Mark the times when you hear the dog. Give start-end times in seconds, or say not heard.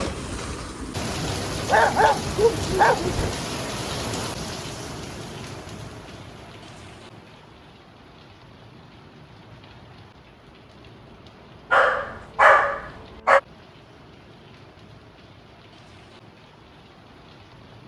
1.6-3.4, 11.7-13.4.